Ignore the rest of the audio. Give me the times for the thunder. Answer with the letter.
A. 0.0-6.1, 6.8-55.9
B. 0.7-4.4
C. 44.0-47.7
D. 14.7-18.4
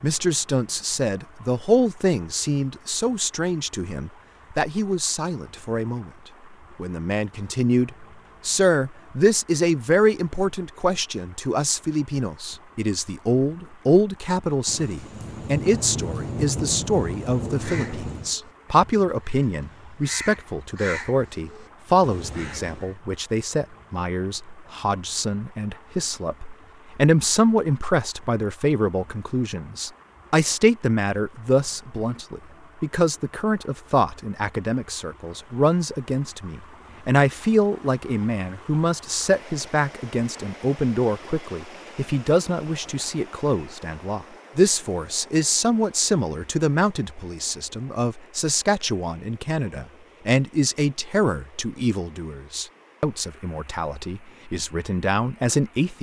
D.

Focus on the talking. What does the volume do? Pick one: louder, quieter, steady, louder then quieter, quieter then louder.
steady.